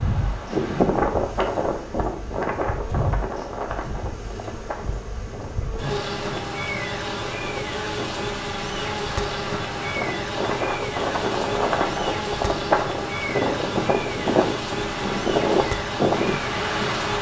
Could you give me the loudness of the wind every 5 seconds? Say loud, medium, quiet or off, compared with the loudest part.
loud, quiet, loud, loud.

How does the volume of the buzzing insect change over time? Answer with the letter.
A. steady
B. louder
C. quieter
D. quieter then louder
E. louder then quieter
B.